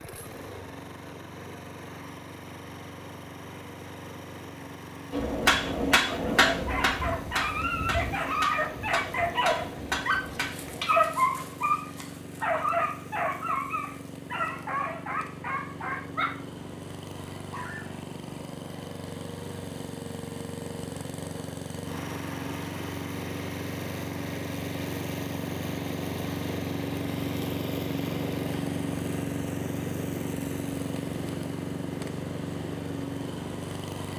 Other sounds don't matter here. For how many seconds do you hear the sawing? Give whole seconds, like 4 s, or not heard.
not heard.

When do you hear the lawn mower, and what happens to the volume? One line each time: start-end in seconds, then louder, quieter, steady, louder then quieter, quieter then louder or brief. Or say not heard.
0.0-34.1 louder.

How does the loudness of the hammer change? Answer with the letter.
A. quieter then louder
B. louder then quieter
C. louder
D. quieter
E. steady
D.